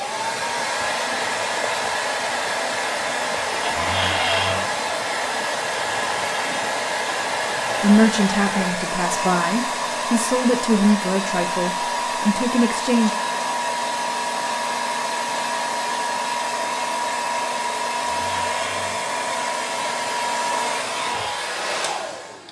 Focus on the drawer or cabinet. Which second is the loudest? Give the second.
4 s.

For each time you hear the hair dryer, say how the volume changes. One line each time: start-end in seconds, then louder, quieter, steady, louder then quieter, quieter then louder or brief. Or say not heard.
0.0-22.4 steady.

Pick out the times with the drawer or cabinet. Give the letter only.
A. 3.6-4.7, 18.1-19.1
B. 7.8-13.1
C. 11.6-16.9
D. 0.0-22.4
A.